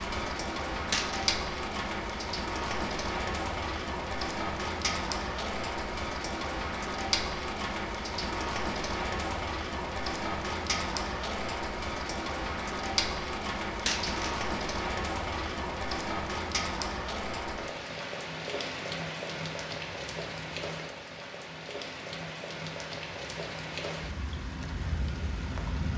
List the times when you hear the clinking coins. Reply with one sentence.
You can hear the clinking coins from 0.8 to 1.4 s and from 13.7 to 14.4 s.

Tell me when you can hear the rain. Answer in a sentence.
You can hear the rain from 0.0 to 25.9 s.